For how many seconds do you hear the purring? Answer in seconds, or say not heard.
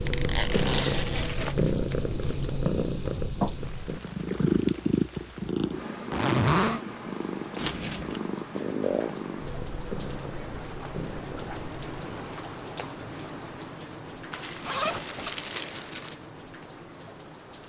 12 s.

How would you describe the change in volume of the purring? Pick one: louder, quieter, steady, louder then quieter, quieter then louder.
quieter.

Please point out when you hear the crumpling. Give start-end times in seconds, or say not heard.
0.5-2.5, 7.5-8.2, 14.3-16.1.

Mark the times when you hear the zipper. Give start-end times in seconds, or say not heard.
0.1-1.2, 6.1-6.8, 14.6-15.3.